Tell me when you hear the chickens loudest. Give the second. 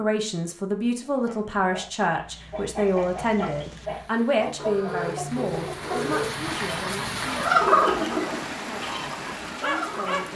8 s.